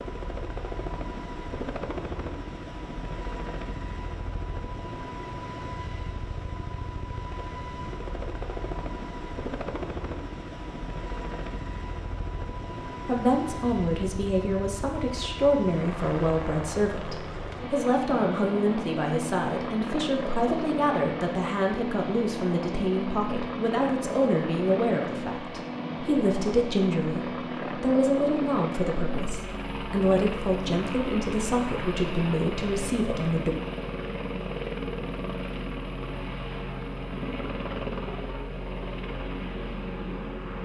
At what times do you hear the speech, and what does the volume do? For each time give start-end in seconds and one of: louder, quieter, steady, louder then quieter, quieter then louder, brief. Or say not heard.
13.1-33.5 steady.